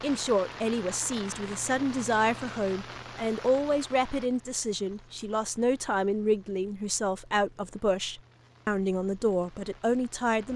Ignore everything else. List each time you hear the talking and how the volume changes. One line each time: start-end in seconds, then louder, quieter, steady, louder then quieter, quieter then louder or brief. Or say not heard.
0.0-10.5 steady.